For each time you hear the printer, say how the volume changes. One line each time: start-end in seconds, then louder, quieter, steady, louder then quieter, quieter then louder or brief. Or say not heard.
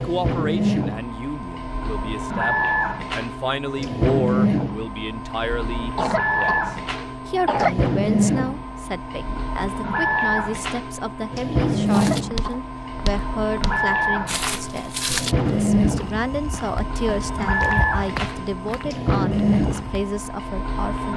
0.0-21.1 steady.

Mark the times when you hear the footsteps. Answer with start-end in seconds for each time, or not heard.
11.9-20.1.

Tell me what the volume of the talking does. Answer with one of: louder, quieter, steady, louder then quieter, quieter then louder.
steady.